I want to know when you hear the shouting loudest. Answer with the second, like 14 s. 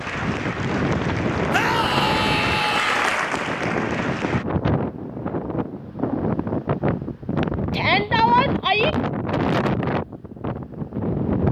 8 s.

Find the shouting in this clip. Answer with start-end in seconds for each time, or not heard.
1.5-3.1, 7.7-8.9.